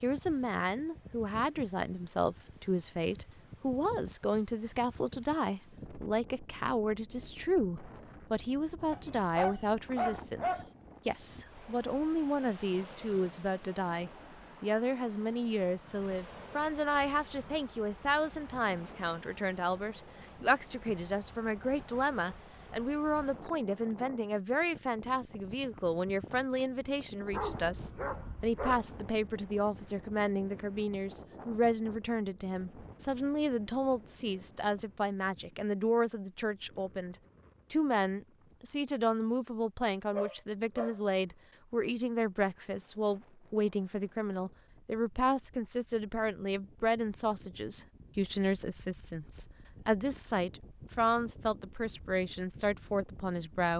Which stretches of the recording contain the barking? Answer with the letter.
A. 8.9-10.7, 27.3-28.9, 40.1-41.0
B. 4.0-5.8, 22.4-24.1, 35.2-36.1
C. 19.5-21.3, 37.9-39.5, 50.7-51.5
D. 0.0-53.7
A.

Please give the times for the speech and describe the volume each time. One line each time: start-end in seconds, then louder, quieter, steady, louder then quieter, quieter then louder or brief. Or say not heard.
0.0-53.7 steady.